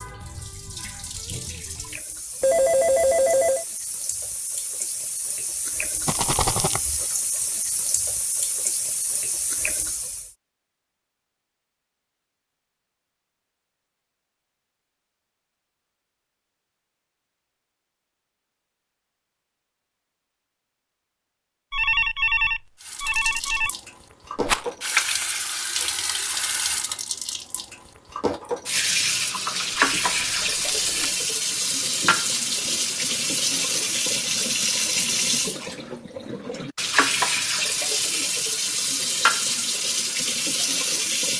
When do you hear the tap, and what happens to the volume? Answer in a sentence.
You can hear the tap from 0.0 to 10.3 s, getting louder; and from 22.8 to 41.3 s, at a steady volume.